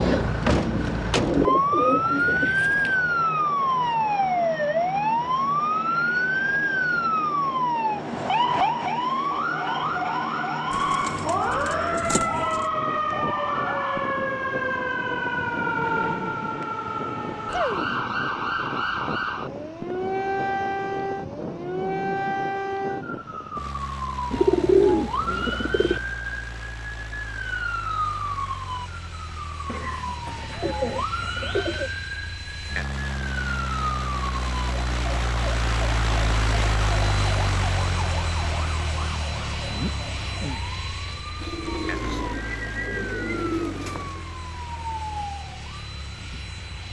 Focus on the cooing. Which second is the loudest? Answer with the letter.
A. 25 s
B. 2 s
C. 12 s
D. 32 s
A.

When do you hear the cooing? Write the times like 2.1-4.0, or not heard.
1.2-3.0, 10.7-12.7, 24.3-26.0, 29.6-31.9, 41.4-44.2.